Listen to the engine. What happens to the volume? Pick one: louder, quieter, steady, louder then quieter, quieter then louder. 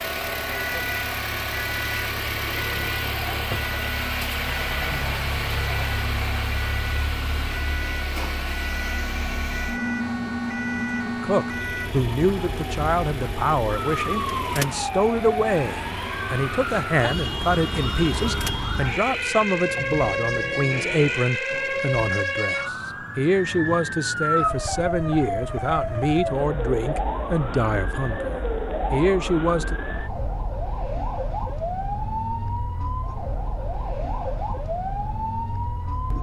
quieter.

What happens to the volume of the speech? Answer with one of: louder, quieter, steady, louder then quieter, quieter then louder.
steady.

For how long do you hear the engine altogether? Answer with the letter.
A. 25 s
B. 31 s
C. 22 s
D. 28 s
C.